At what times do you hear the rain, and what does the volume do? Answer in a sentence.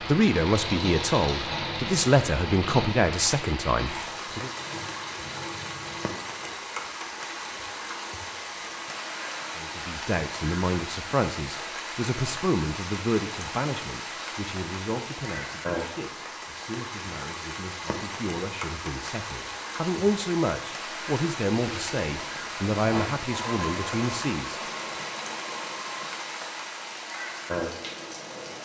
You can hear the rain from 0.0 to 28.6 s, at a steady volume.